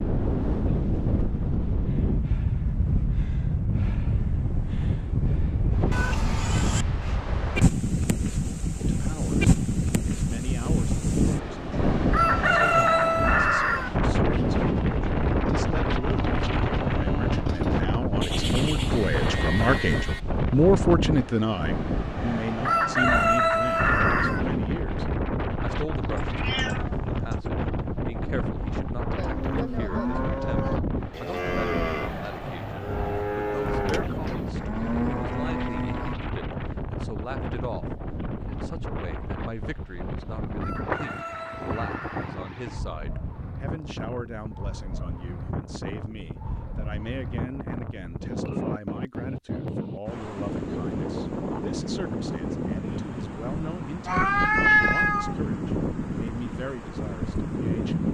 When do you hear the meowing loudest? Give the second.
55 s.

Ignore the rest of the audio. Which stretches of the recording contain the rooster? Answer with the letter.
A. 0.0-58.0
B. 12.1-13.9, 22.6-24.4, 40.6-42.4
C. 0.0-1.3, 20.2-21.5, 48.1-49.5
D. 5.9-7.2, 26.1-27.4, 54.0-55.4
B.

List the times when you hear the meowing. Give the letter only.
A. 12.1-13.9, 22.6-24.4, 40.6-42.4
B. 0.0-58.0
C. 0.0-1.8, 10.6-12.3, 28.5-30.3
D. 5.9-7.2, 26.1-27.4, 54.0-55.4
D.